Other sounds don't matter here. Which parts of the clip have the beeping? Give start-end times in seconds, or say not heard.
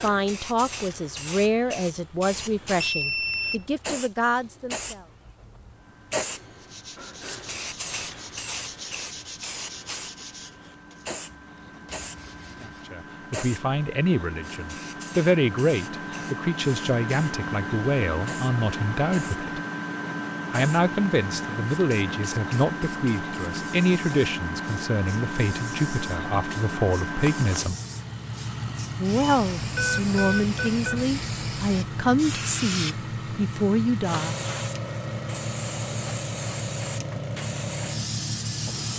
2.3-3.6, 29.2-31.1.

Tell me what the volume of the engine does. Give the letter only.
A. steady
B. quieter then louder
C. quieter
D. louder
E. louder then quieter
D.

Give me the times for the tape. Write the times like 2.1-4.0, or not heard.
not heard.